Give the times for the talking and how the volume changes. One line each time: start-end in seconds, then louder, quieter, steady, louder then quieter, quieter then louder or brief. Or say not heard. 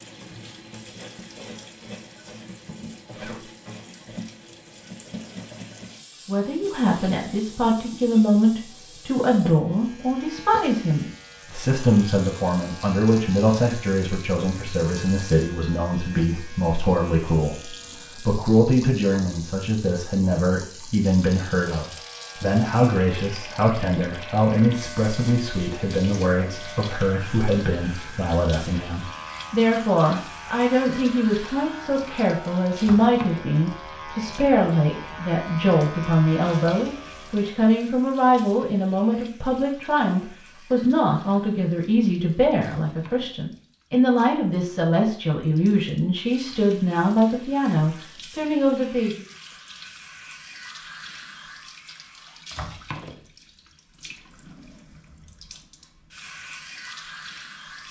6.2-49.2 steady.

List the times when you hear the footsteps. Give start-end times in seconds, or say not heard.
not heard.